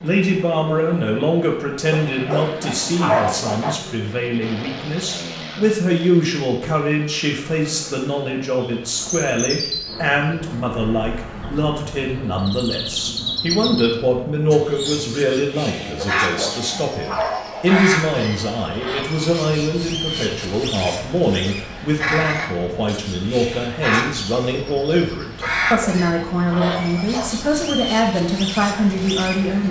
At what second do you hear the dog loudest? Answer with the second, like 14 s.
3 s.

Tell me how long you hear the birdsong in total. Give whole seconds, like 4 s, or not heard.
21 s.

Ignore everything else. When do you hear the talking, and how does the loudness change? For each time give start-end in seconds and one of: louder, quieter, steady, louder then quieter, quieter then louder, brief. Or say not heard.
0.0-29.6 steady.